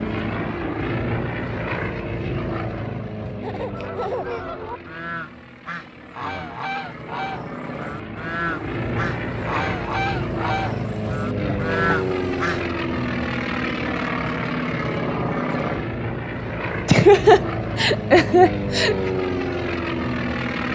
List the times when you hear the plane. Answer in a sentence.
You can hear the plane from 0.0 to 20.6 s.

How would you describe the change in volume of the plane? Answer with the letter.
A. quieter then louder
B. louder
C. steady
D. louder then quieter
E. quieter
A.